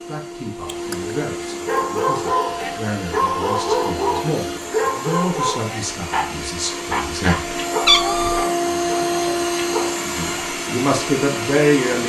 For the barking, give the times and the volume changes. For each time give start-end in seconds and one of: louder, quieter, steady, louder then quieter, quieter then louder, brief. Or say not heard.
1.6-9.9 quieter.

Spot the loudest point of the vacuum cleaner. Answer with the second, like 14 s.
9 s.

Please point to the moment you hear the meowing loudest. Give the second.
8 s.